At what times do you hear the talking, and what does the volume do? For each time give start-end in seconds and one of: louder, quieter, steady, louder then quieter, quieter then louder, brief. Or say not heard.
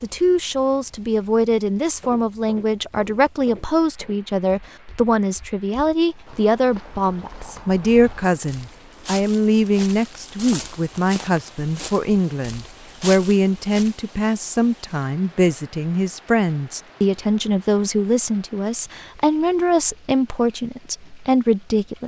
0.0-22.0 steady.